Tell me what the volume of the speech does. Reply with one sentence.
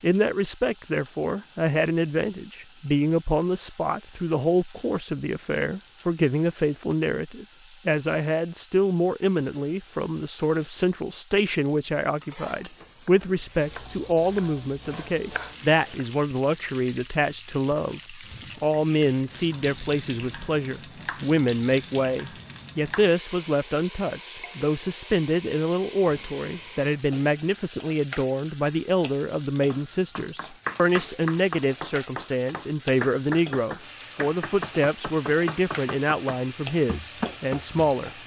The volume of the speech stays about the same.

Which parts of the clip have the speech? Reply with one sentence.
You can hear the speech from 0.0 to 38.1 s.